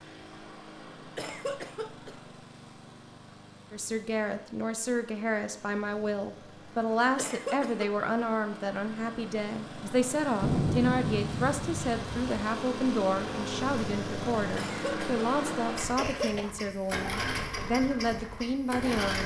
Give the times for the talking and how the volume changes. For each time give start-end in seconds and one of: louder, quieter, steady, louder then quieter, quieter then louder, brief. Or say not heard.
3.7-19.2 steady.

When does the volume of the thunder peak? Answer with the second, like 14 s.
11 s.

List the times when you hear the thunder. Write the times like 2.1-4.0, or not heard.
10.4-12.4.